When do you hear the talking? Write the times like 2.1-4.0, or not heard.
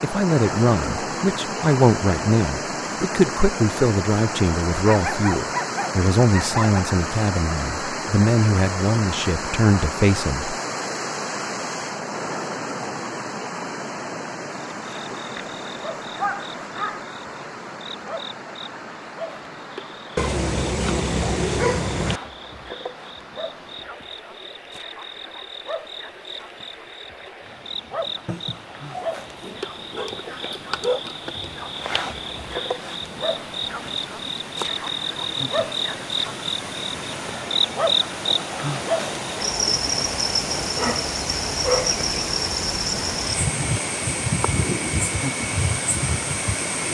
0.0-10.6.